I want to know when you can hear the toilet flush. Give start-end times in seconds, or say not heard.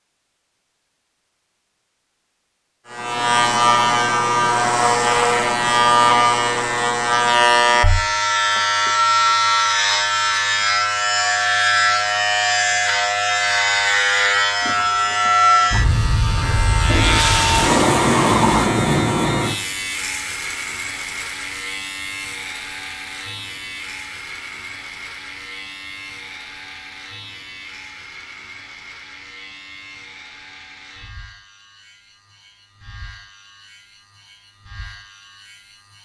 16.9-18.8.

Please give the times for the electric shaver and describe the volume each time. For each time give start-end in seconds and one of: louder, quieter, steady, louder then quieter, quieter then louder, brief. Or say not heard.
2.9-35.9 quieter.